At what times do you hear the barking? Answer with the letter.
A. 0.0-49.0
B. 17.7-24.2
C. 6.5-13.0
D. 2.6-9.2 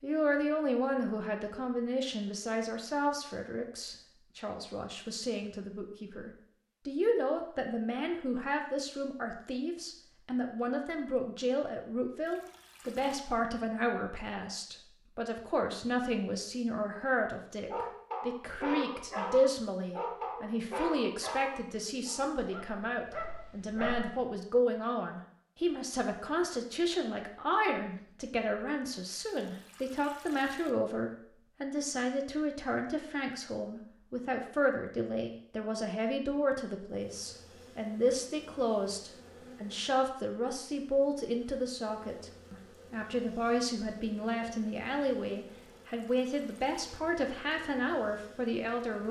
B.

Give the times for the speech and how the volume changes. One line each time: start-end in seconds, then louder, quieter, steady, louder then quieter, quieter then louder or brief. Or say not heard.
0.0-49.0 steady.